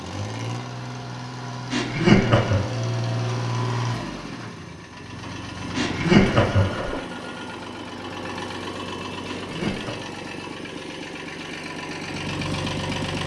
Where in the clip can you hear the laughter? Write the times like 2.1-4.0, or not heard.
1.7-2.6, 5.8-7.0, 9.2-9.9.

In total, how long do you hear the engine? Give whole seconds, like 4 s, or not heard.
13 s.